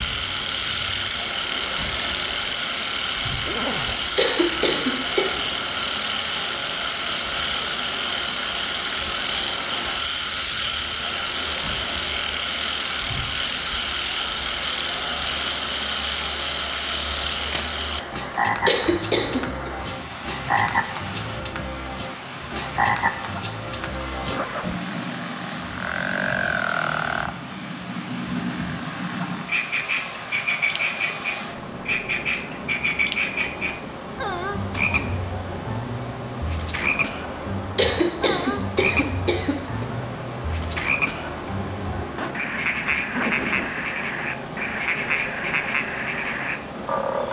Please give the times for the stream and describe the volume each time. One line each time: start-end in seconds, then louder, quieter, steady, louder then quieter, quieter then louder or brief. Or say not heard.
0.0-47.2 steady.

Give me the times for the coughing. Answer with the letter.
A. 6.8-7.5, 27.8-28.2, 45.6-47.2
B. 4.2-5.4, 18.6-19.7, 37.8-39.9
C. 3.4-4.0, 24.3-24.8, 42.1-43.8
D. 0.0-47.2
B.